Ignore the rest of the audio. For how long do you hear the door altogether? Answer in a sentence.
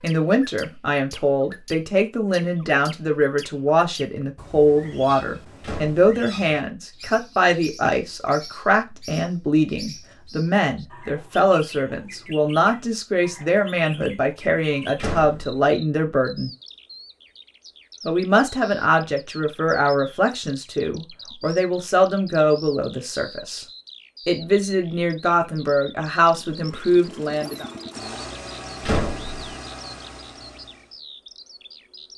You can hear the door for 2 seconds altogether.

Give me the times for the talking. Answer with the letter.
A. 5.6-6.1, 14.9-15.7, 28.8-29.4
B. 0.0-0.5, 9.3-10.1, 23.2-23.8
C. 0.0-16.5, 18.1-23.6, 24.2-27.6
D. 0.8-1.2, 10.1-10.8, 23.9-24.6
C.